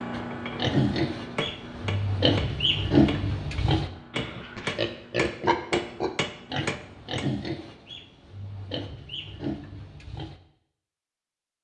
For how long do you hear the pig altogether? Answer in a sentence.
The pig can be heard for 10 seconds in total.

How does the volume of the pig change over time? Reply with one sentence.
The volume of the pig goes down.